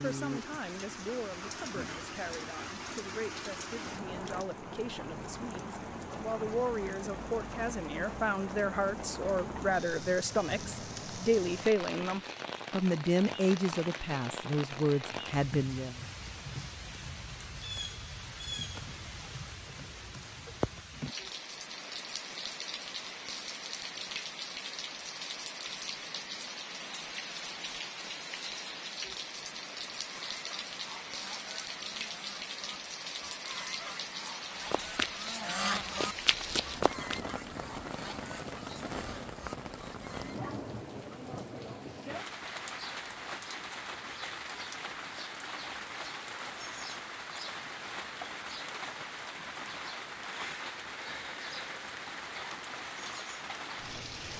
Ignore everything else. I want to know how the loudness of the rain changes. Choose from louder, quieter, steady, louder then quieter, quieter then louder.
steady.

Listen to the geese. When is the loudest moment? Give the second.
36 s.